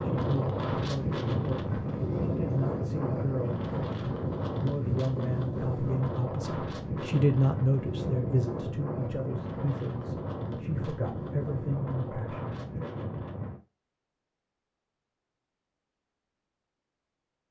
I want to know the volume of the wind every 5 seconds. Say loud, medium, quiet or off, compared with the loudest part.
loud, loud, medium, off.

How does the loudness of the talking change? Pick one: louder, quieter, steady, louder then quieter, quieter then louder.
louder then quieter.